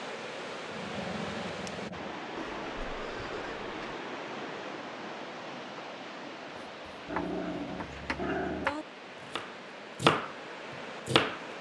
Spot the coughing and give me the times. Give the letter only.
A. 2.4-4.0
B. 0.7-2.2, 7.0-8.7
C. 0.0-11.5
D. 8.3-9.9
A.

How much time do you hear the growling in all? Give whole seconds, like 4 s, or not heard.
3 s.